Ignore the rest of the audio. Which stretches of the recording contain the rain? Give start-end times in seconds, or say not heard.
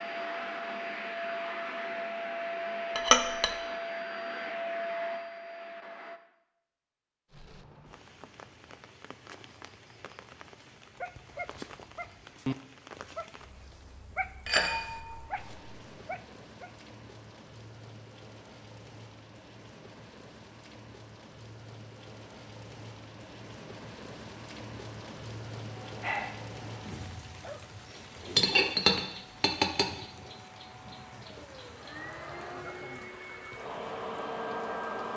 7.3-35.1.